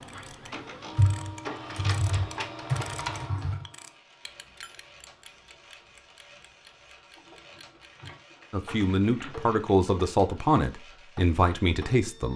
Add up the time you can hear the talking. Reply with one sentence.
The talking can be heard for 4 seconds in total.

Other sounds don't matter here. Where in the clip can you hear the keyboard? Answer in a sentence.
The keyboard can be heard from 0.9 to 3.6 s and from 7.2 to 9.8 s.